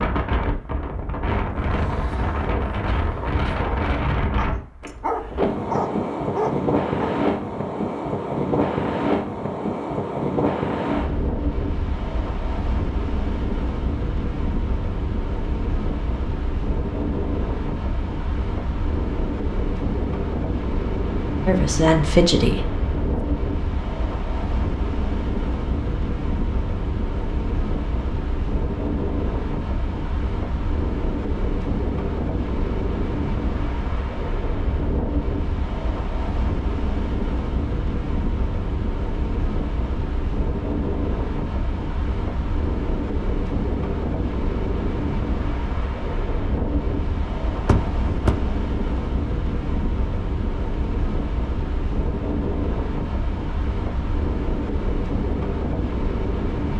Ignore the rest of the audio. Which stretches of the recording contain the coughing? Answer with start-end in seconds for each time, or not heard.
not heard.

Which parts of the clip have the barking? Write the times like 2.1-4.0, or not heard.
1.6-7.2.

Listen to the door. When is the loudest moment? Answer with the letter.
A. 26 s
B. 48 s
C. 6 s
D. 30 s
B.